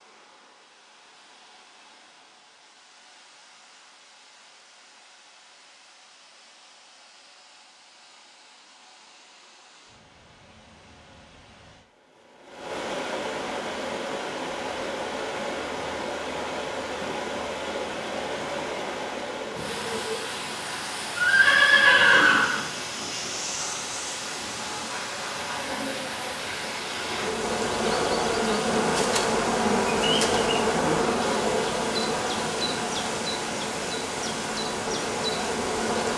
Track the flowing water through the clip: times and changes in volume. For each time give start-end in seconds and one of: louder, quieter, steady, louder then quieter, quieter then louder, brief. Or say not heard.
0.0-36.1 louder.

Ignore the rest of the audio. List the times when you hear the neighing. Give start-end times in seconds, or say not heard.
21.1-22.6.